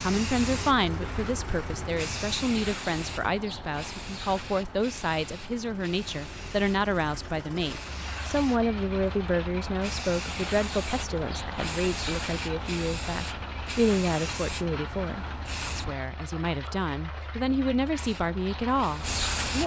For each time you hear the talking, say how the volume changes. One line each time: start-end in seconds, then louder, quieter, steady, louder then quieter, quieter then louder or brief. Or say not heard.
0.0-19.6 steady.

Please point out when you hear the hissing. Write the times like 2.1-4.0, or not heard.
0.0-15.9, 17.9-19.6.